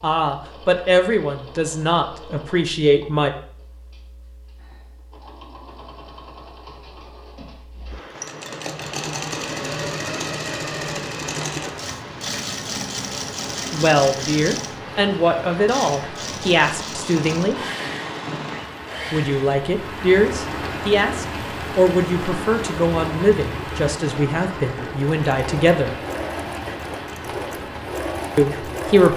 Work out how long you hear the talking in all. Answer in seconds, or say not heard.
15 s.